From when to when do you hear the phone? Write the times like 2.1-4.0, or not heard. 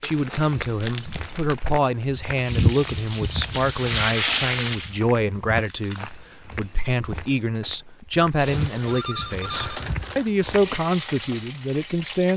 8.3-9.8.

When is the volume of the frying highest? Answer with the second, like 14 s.
4 s.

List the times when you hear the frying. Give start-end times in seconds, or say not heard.
2.3-5.0, 10.4-12.3.